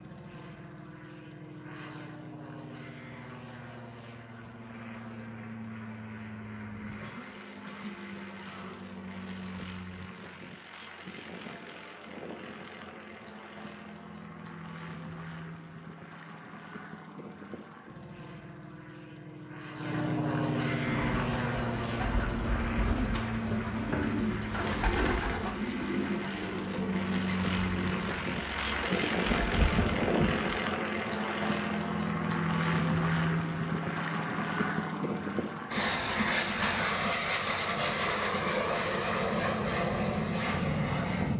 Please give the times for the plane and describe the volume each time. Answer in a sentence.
You can hear the plane from 0.0 to 41.3 s, getting louder.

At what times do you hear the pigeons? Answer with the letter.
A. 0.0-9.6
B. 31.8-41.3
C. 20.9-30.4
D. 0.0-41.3
C.